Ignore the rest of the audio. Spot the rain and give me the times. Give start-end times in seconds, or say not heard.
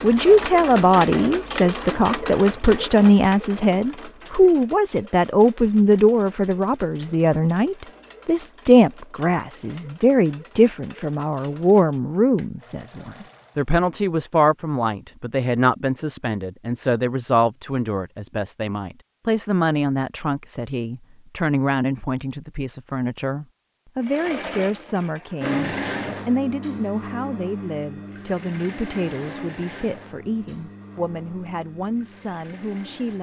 not heard.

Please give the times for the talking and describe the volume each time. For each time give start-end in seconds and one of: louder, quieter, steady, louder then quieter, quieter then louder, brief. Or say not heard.
0.0-33.1 quieter.